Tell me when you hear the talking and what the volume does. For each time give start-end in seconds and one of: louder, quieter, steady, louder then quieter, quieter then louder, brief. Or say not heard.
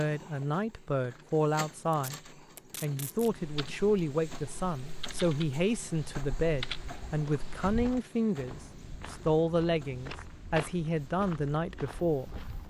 0.0-12.6 steady.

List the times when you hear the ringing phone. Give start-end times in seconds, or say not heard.
not heard.